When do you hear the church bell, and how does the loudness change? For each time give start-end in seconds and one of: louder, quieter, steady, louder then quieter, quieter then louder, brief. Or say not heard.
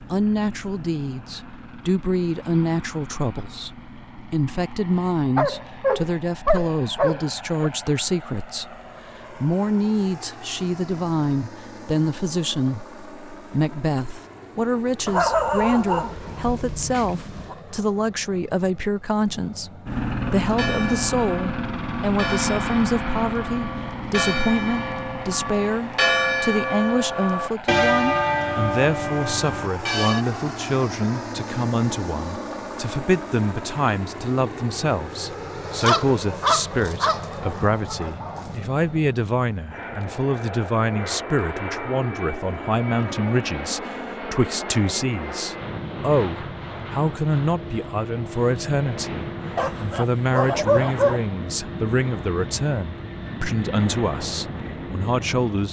20.4-30.2 louder.